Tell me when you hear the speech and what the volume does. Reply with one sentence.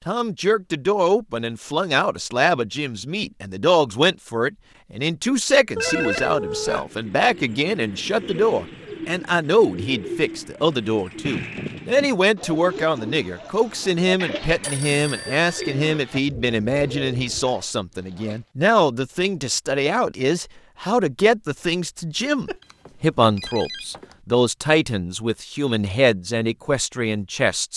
The speech can be heard from 0.1 to 27.7 s, at a steady volume.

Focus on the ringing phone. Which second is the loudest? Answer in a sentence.
The loudest moment of the ringing phone is at 6 seconds.